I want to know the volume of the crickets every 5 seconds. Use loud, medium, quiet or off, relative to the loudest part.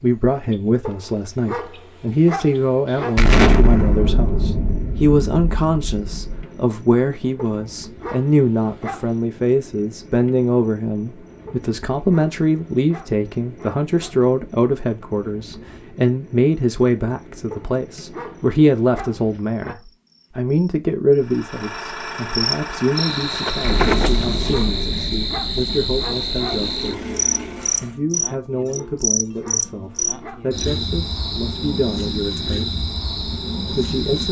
quiet, quiet, quiet, quiet, loud, loud, loud.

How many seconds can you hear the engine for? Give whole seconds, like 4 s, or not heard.
7 s.